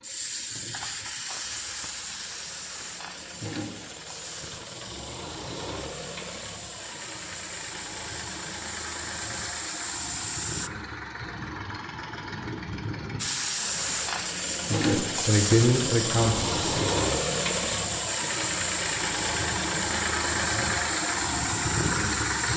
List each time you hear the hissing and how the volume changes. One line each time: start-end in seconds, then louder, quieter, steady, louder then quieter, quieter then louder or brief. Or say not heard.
0.0-10.7 quieter then louder
13.2-22.5 steady.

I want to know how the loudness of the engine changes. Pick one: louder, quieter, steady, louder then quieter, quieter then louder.
louder.